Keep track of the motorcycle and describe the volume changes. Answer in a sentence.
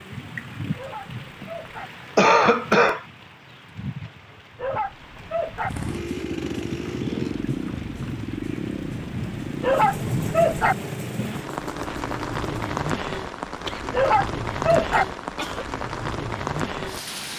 The volume of the motorcycle goes down.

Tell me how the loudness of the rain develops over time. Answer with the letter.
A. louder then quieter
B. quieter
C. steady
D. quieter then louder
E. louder
E.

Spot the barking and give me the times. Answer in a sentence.
The barking can be heard from 0.8 to 1.9 s, from 4.5 to 5.7 s, from 9.6 to 10.8 s and from 13.9 to 15.1 s.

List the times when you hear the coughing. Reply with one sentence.
The coughing can be heard from 2.1 to 3.0 s and from 13.7 to 15.7 s.